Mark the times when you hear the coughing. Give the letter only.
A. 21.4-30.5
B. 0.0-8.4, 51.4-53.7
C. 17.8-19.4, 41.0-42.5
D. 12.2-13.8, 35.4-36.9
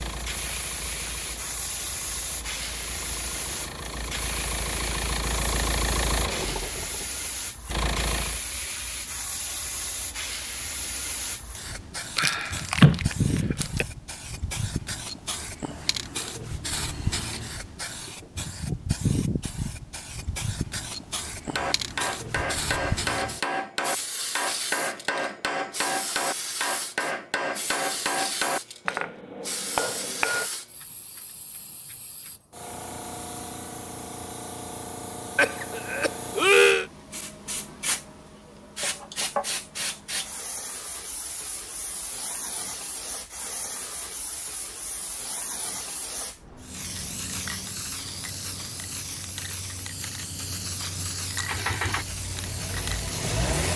D.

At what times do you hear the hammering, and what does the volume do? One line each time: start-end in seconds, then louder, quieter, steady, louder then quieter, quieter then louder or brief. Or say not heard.
21.4-30.5 steady.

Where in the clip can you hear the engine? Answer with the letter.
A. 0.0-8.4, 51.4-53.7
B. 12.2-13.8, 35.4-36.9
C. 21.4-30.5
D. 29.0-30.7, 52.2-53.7
A.